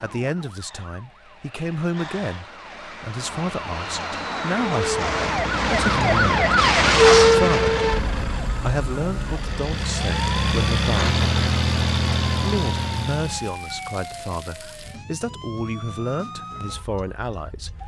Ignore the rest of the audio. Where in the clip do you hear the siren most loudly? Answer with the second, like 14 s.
7 s.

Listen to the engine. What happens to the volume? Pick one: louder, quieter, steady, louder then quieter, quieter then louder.
quieter then louder.